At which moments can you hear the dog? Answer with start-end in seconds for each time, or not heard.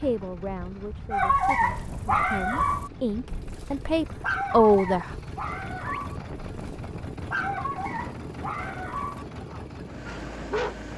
1.1-10.8.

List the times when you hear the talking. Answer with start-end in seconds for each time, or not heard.
0.0-5.1.